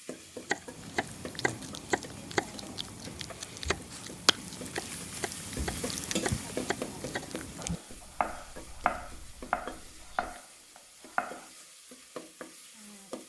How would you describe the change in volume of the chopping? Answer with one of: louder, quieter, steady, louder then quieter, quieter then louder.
quieter then louder.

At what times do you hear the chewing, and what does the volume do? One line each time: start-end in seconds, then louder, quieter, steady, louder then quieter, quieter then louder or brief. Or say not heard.
0.6-10.4 louder then quieter.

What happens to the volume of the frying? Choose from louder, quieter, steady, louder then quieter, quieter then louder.
louder then quieter.